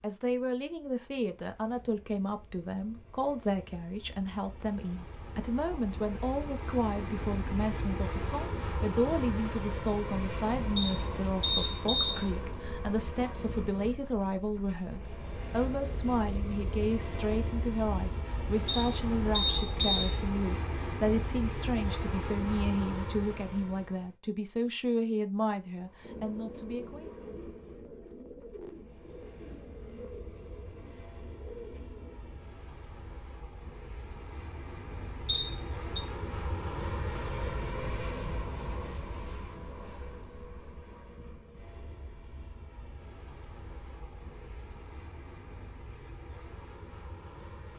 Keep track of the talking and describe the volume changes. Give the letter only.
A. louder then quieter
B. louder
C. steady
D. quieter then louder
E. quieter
C.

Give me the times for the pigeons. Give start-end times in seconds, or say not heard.
26.0-32.4.